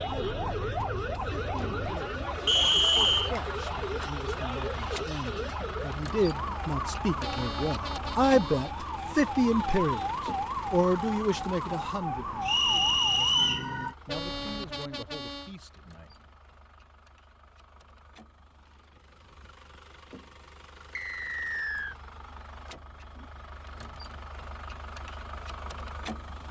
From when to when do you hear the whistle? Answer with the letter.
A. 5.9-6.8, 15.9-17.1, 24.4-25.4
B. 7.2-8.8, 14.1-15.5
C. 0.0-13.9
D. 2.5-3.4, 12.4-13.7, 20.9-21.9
D.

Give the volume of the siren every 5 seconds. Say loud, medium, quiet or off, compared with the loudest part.
loud, loud, loud, off, off, off.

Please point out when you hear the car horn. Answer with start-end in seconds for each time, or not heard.
7.2-8.8, 14.1-15.5.